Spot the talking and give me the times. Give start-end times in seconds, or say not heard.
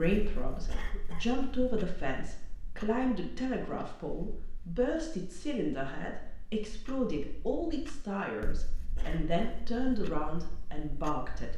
0.0-11.5.